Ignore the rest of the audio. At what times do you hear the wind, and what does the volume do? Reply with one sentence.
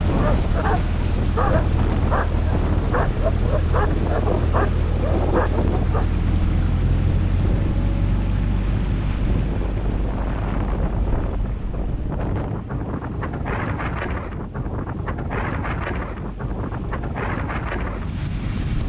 The wind can be heard from 0.0 to 18.8 s, at a steady volume.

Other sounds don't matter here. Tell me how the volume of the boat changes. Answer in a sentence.
The loudness of the boat goes down.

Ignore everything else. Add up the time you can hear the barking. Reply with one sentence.
The barking can be heard for 6 seconds in total.